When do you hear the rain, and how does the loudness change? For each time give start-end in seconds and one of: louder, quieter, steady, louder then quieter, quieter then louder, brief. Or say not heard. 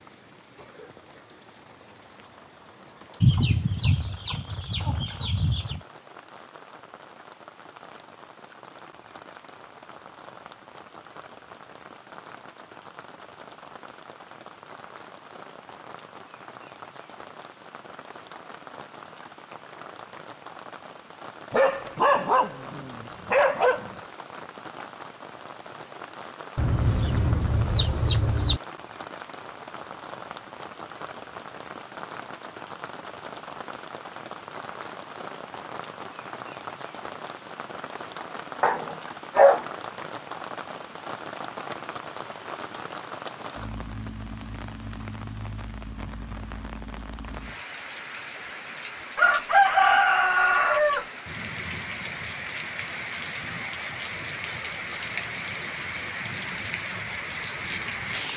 0.0-58.3 louder.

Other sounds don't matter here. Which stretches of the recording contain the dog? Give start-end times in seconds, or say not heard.
21.5-23.9, 38.6-39.6.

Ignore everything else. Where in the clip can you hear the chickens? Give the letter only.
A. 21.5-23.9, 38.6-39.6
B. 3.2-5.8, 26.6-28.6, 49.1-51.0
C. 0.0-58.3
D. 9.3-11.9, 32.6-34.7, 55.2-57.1
B.